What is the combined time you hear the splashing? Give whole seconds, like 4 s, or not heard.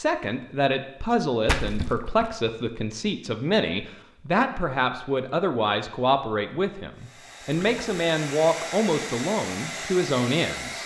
2 s.